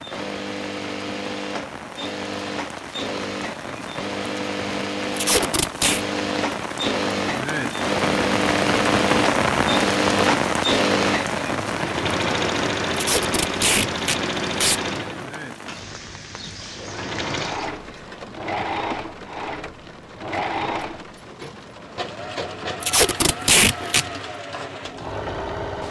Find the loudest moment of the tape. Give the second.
24 s.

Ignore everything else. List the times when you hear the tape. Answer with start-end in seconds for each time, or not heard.
5.2-6.0, 12.9-14.8, 22.8-24.1.